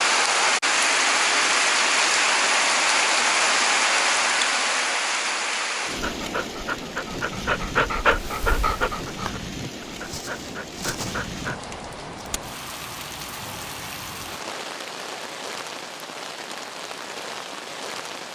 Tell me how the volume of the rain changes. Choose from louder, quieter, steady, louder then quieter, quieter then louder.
quieter.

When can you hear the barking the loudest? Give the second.
8 s.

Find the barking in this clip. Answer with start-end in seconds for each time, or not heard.
5.9-11.6.